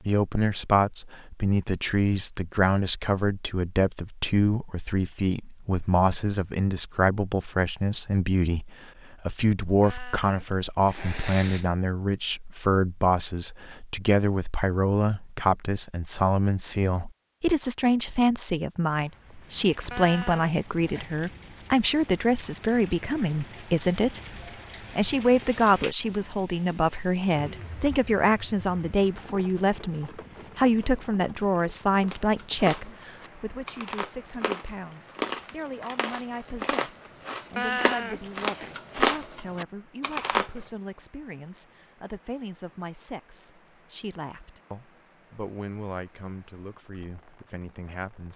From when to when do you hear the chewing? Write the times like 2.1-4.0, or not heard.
32.0-40.5.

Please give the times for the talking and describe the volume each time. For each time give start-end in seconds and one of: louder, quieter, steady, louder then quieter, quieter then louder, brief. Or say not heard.
0.1-24.2 steady
24.9-48.3 quieter.